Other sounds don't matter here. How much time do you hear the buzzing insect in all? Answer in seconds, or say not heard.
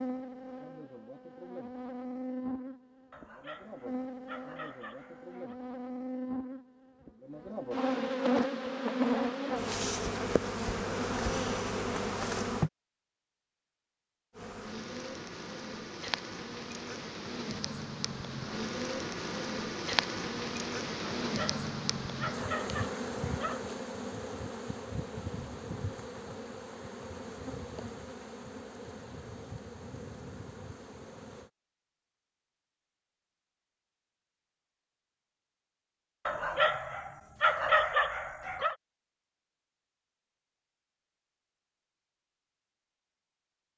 30 s.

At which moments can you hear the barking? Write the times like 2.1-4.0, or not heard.
3.1-5.5, 21.1-23.6, 36.2-38.8.